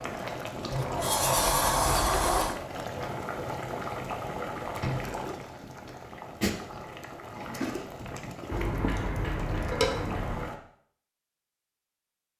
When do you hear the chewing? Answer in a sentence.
You can't hear the chewing here.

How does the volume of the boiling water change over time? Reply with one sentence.
The loudness of the boiling water stays about the same.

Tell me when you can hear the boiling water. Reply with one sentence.
You can hear the boiling water from 0.0 to 10.6 s.